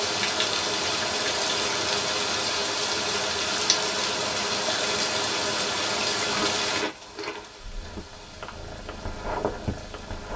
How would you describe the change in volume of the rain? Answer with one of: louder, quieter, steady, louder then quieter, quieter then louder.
quieter.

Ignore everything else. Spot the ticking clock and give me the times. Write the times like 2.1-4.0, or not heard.
not heard.